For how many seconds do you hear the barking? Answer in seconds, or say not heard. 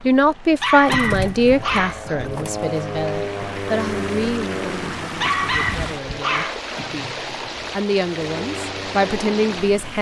3 s.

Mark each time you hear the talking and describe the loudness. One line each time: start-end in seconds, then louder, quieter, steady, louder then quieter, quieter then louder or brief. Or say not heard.
0.1-9.9 quieter then louder.